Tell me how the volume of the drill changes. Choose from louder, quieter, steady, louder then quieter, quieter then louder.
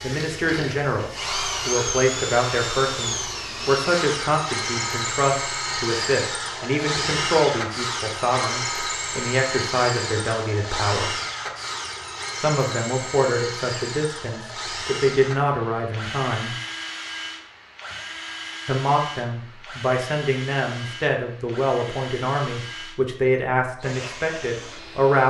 quieter.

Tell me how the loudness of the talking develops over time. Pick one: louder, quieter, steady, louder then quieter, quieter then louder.
steady.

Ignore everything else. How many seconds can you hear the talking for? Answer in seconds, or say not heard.
22 s.